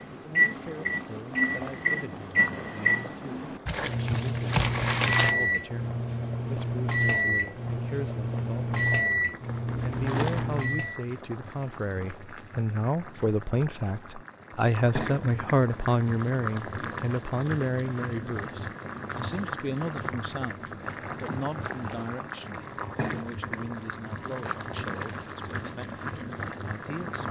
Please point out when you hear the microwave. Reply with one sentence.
You can hear the microwave from 0.0 to 11.1 s.